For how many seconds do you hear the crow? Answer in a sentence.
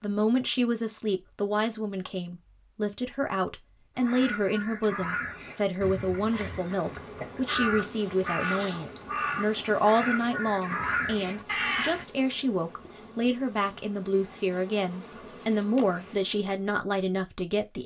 The crow can be heard for 8 seconds in total.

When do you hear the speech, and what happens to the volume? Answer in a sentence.
The speech can be heard from 0.0 to 17.8 s, at a steady volume.